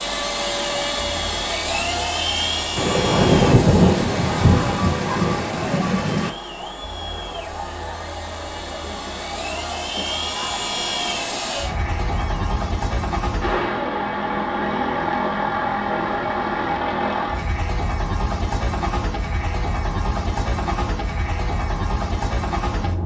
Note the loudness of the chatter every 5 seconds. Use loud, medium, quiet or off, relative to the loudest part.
loud, loud, loud, off, off.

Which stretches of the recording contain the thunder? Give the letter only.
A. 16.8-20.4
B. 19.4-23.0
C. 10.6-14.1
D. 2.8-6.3
D.